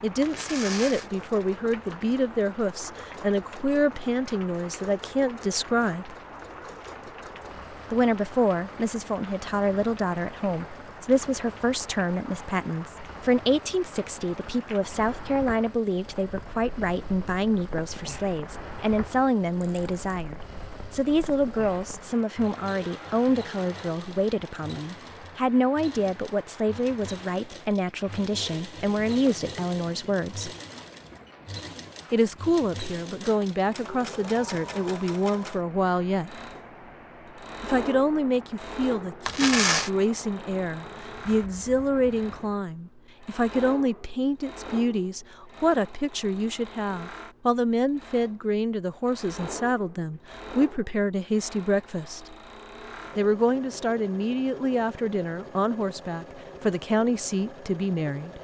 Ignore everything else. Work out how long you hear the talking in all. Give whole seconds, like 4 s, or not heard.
53 s.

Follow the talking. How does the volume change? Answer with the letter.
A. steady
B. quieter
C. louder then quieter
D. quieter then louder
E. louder
A.